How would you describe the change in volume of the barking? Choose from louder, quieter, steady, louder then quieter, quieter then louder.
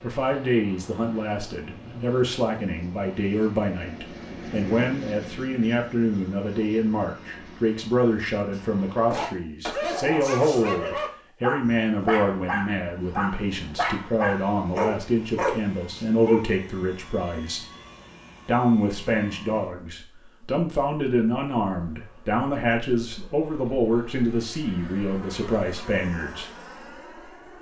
steady.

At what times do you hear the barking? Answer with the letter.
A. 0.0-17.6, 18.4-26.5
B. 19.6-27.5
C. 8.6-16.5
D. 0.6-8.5
C.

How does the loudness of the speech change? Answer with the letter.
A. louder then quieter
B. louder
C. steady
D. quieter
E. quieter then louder
C.